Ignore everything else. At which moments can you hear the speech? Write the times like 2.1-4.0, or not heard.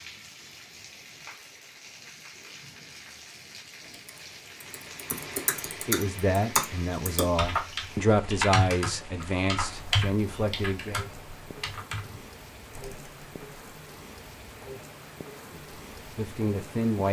5.8-11.0, 15.5-17.0.